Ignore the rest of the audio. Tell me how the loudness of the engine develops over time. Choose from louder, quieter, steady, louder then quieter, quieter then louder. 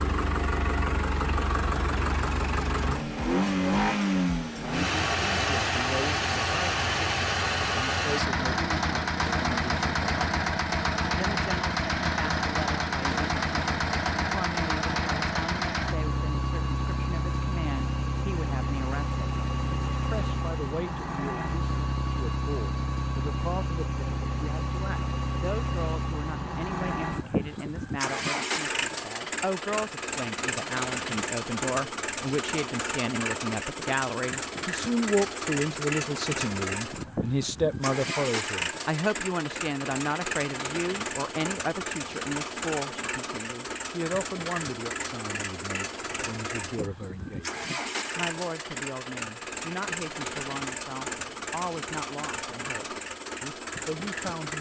quieter.